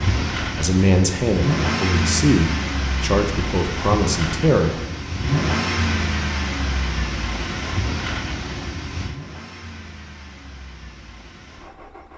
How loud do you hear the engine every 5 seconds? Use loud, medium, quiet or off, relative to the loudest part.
loud, loud, quiet.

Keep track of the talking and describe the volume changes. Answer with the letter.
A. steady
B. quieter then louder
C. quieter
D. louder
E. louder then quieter
A.